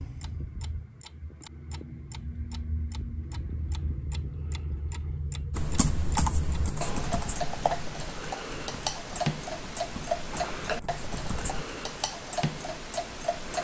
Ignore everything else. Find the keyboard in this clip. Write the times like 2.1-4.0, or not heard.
5.5-11.7.